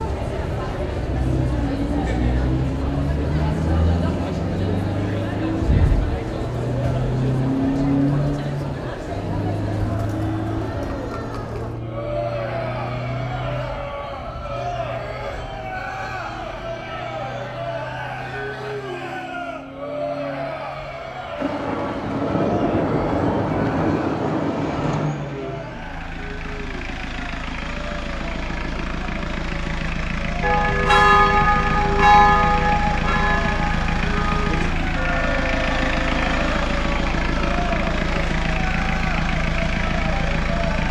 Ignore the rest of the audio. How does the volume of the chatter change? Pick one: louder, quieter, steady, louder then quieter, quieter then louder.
quieter then louder.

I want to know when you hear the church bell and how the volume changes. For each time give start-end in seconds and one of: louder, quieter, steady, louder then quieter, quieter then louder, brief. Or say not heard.
30.4-36.5 quieter.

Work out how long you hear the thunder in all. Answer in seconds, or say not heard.
4 s.